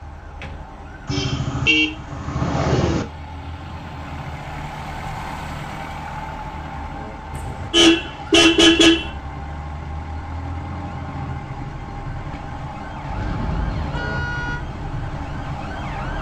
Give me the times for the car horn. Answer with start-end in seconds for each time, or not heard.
1.1-3.0, 7.3-9.1, 13.0-14.6.